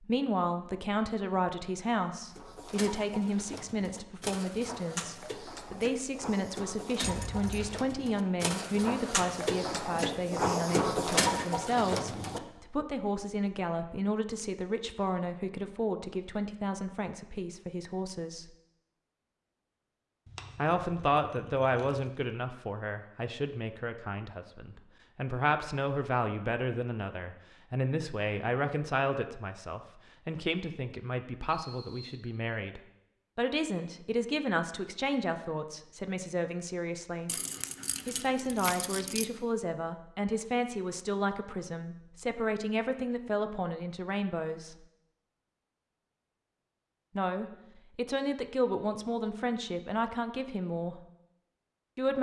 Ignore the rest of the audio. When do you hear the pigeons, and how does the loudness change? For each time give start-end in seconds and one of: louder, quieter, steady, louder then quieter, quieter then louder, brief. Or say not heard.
2.3-12.8 louder.